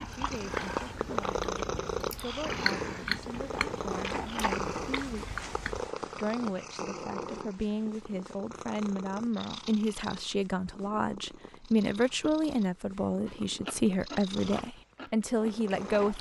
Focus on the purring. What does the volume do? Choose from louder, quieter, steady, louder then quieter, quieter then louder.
quieter.